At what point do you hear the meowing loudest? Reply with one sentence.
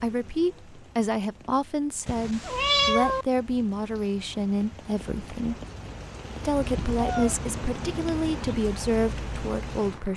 The loudest moment of the meowing is at 3 seconds.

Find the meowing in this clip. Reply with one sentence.
The meowing can be heard from 2.0 to 3.2 s and from 6.5 to 8.6 s.